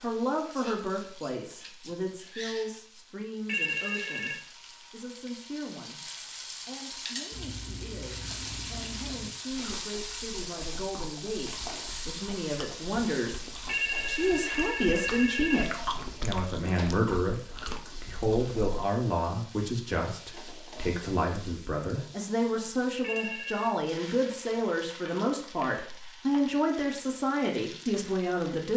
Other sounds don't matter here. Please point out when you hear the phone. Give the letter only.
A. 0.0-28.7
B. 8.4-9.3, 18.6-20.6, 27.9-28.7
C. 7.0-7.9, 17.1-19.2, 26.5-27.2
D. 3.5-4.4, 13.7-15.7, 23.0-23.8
D.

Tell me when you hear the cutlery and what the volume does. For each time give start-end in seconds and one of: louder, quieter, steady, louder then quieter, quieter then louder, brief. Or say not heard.
not heard.